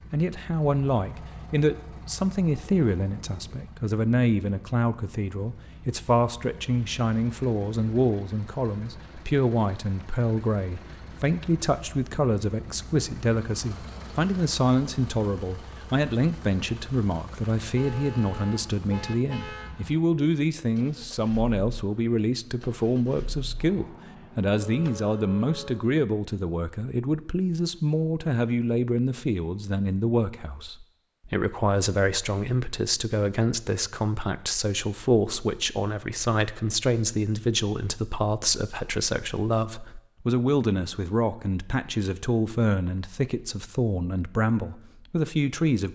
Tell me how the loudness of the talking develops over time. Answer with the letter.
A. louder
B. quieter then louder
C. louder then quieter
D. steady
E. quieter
D.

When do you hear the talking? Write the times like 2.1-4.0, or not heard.
0.1-45.9.